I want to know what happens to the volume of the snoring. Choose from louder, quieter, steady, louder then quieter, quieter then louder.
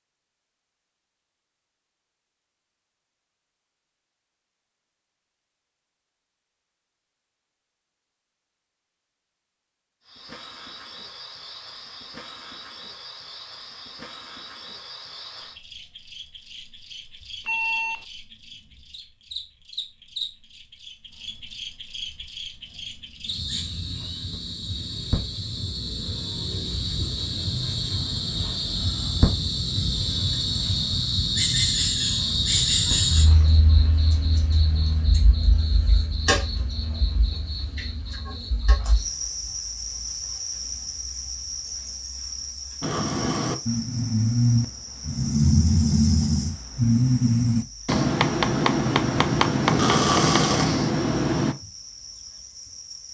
steady.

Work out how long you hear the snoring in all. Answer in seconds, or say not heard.
9 s.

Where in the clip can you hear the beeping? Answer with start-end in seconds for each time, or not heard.
17.4-18.1.